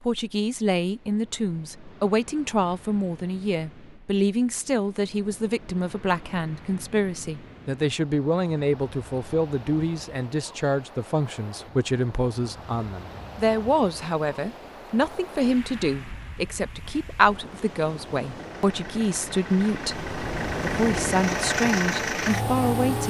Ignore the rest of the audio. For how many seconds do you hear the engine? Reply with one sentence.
The engine can be heard for 5 seconds in total.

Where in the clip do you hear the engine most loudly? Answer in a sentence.
The volume of the engine peaks at 22 seconds.